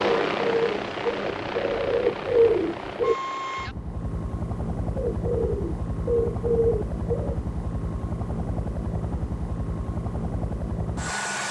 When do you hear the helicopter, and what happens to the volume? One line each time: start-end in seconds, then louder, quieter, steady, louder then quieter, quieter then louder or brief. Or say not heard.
0.0-11.4 steady.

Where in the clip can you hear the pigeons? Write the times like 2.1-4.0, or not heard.
0.0-3.1, 5.0-7.3.